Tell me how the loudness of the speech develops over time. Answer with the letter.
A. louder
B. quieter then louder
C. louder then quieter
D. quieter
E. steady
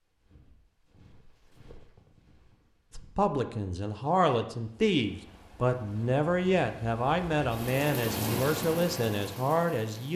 E.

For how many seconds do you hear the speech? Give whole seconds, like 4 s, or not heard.
7 s.